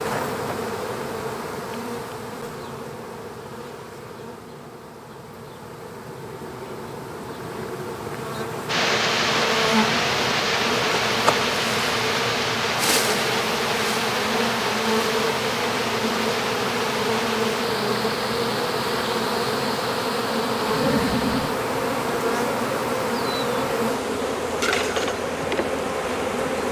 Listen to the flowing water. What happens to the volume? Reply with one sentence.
The loudness of the flowing water goes down.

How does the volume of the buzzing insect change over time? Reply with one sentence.
The loudness of the buzzing insect goes up.